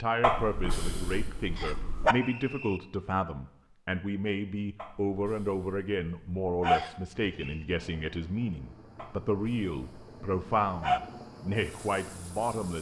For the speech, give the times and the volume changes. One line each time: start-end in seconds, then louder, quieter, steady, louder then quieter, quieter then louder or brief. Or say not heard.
0.0-12.7 steady.